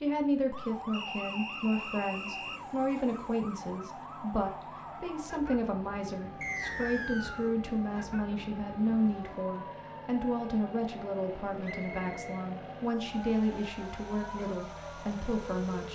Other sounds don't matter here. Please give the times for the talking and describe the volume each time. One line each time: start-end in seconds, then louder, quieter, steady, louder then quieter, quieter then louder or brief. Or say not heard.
0.0-15.9 steady.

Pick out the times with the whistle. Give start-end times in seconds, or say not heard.
0.9-2.6, 6.4-7.5, 11.6-13.1.